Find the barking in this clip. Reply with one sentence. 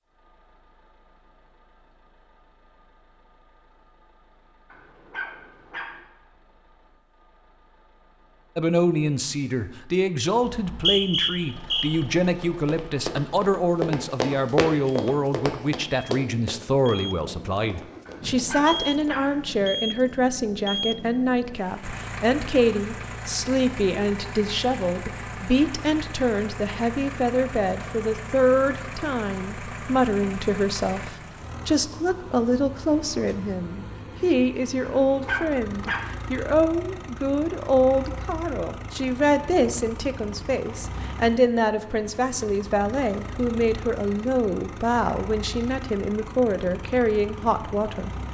The barking can be heard from 4.7 to 6.0 s, from 18.1 to 19.4 s and from 35.0 to 36.1 s.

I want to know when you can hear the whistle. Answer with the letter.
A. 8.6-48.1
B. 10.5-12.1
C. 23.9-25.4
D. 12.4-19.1
B.